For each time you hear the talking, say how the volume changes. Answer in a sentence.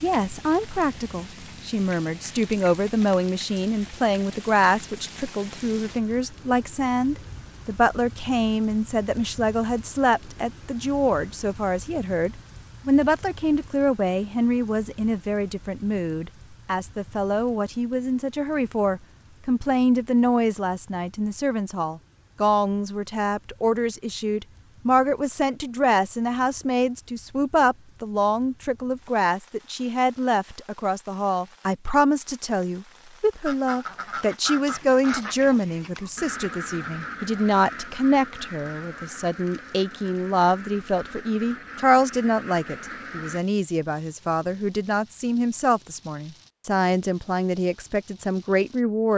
You can hear the talking from 0.0 to 49.1 s, at a steady volume.